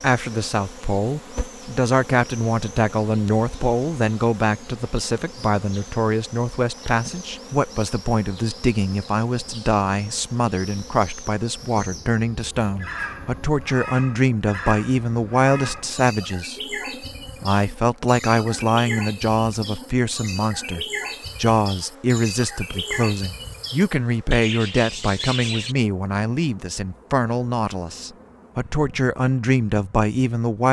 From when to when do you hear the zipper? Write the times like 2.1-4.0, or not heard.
not heard.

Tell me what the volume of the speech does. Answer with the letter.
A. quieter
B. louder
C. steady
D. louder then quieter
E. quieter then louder
C.